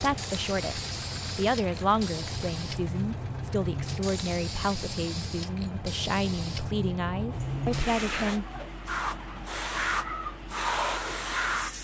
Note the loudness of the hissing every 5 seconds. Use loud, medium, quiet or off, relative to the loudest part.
medium, loud, loud.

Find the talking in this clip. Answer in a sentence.
You can hear the talking from 0.0 to 8.4 s.